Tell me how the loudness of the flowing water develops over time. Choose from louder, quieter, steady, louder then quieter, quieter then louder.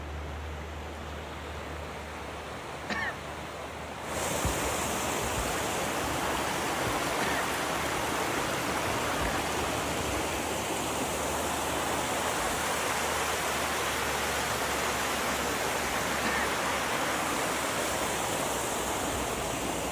louder.